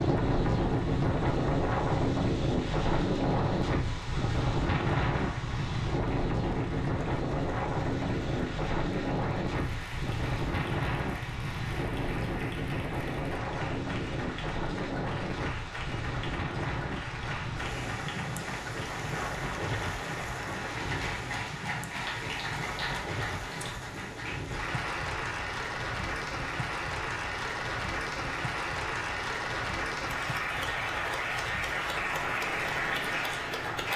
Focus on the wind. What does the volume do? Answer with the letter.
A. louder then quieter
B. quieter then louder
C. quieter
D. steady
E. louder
C.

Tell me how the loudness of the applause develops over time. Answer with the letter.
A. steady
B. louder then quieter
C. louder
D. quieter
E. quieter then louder
C.